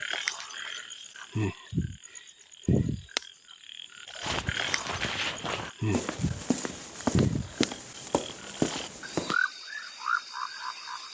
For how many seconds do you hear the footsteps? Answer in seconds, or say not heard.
5 s.